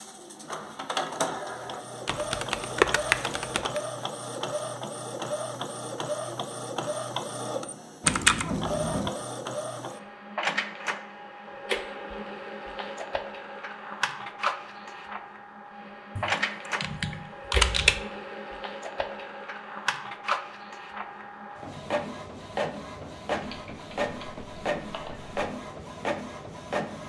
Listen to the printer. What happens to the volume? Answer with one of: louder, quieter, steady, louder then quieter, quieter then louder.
steady.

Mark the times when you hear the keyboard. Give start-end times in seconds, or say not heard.
2.0-3.8, 8.0-9.1, 16.1-18.0, 23.4-25.4.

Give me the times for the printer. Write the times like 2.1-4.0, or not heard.
0.0-27.0.